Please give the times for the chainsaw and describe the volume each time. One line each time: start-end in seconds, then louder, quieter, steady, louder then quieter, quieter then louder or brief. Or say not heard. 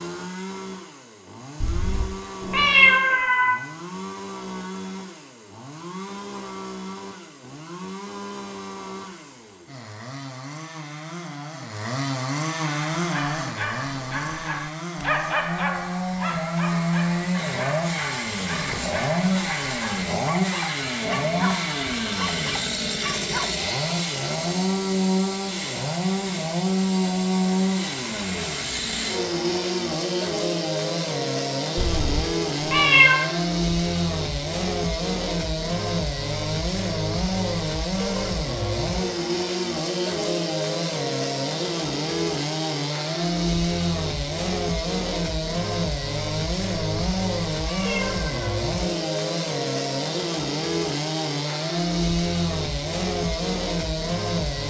0.0-54.6 louder.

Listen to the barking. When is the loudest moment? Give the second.
15 s.